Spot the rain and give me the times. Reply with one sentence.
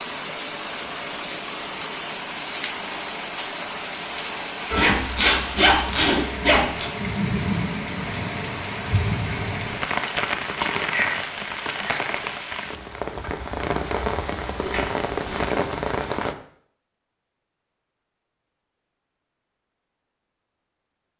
The rain can be heard from 0.0 to 16.4 s.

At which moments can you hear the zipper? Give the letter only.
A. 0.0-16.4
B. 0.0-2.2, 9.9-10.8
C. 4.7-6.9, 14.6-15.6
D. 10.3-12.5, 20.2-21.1
C.